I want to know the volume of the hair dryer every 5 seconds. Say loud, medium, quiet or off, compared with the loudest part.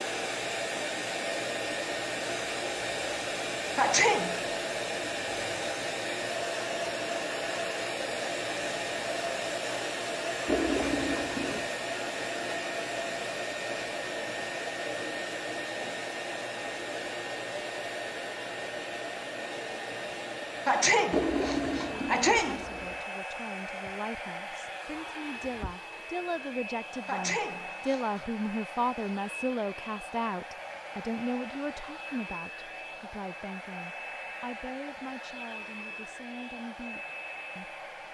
loud, loud, loud, loud, medium, medium, medium, medium.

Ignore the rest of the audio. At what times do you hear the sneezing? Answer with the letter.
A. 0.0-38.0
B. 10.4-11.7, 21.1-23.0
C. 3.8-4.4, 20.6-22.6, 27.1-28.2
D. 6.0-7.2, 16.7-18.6
C.